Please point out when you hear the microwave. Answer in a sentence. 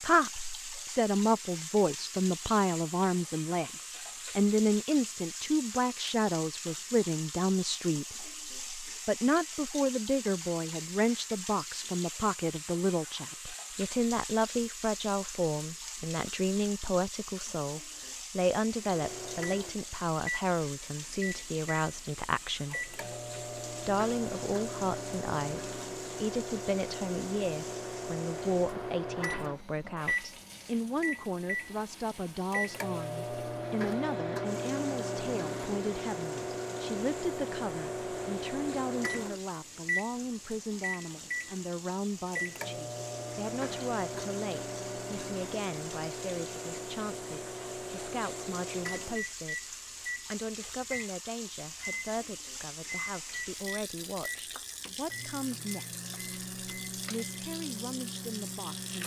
The microwave can be heard from 18.8 to 59.0 s.